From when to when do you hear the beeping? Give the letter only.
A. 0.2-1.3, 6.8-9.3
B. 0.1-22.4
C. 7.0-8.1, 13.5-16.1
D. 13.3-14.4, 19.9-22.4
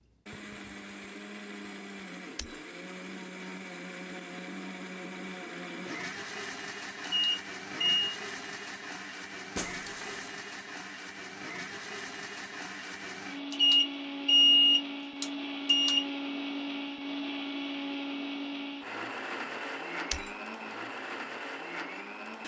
C.